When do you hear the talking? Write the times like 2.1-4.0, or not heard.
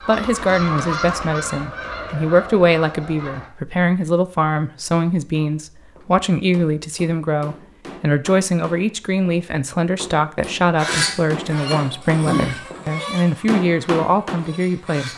0.0-15.1.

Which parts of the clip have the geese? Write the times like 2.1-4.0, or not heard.
0.0-3.5, 10.8-15.1.